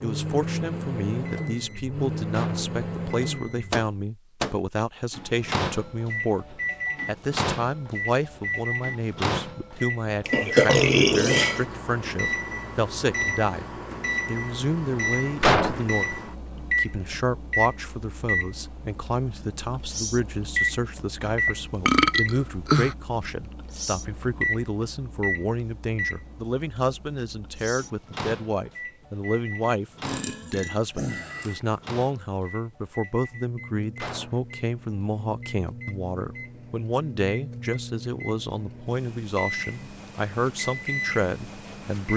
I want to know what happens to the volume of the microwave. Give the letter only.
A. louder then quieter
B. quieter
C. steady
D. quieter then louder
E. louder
B.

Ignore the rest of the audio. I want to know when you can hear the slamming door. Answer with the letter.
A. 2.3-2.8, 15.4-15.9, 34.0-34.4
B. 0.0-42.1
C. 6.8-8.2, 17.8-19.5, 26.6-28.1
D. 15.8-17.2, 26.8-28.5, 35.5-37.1
A.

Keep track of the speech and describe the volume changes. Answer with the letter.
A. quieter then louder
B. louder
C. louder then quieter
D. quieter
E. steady
E.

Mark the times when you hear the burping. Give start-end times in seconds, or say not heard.
10.2-11.7, 21.2-22.9, 30.0-31.6.